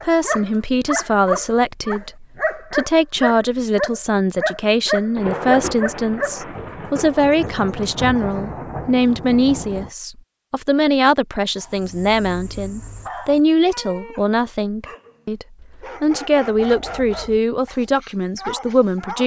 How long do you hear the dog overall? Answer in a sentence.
You can hear the dog for 14 seconds altogether.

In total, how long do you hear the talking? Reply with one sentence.
You can hear the talking for 19 seconds altogether.